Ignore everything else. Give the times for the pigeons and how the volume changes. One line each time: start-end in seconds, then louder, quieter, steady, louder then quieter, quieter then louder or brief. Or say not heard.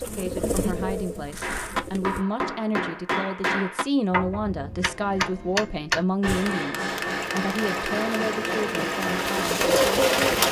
0.0-2.2 brief
6.2-10.4 louder.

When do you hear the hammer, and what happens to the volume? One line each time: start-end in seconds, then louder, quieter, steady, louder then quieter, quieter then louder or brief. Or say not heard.
1.4-9.4 steady.